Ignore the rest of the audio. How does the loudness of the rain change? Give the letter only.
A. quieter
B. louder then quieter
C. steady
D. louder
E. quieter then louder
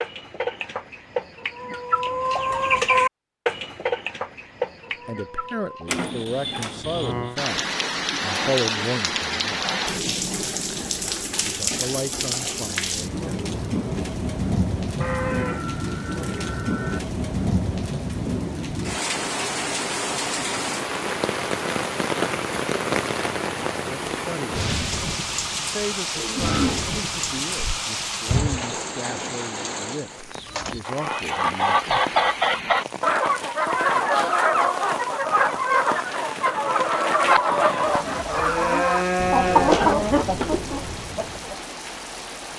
A.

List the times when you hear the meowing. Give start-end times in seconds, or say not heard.
not heard.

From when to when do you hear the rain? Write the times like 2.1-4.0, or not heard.
7.3-42.5.